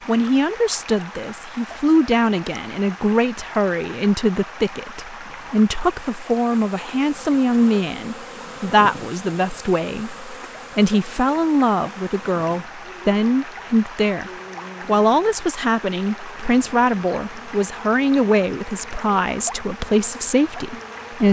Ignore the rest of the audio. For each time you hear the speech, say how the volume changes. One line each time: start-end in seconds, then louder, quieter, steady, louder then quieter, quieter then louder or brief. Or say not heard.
0.1-21.2 steady.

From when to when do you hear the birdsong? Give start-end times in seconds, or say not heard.
not heard.